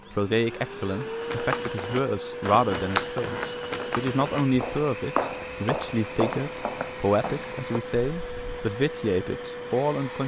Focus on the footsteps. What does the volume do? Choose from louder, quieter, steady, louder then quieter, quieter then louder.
quieter.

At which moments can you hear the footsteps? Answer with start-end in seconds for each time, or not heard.
1.0-8.7.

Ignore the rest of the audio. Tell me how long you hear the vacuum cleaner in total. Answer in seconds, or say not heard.
10 s.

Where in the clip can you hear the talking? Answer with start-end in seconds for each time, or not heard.
0.1-10.2.